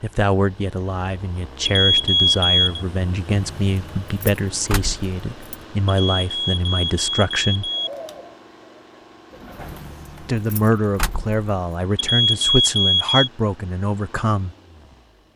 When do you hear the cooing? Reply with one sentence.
The cooing can be heard from 7.6 to 10.0 s.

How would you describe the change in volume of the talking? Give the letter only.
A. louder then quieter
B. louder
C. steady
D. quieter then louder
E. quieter
C.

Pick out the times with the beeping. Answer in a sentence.
The beeping can be heard from 1.6 to 2.8 s, from 5.9 to 7.9 s and from 11.9 to 13.2 s.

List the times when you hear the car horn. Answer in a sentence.
You can't hear the car horn here.